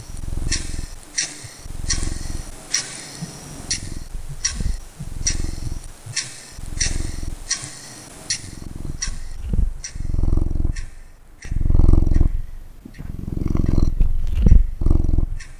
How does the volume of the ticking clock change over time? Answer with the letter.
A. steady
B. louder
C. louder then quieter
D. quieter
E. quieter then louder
D.